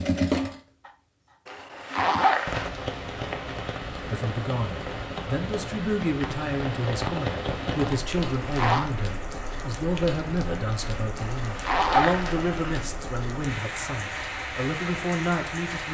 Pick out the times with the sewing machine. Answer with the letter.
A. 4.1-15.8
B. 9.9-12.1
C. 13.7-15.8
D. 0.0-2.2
D.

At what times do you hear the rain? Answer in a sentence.
You can hear the rain from 2.5 to 15.8 s.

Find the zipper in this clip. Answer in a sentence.
You can hear the zipper from 1.4 to 2.7 s, from 8.3 to 8.9 s and from 11.2 to 12.9 s.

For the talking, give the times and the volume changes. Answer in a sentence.
The talking can be heard from 4.1 to 15.8 s, at a steady volume.